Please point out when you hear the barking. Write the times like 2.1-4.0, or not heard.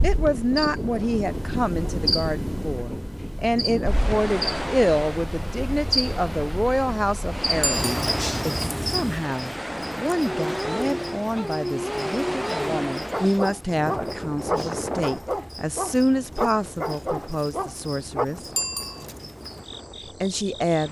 10.2-18.2.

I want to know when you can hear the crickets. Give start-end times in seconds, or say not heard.
0.0-20.8.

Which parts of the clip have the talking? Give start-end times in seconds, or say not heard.
0.0-18.4, 20.2-20.8.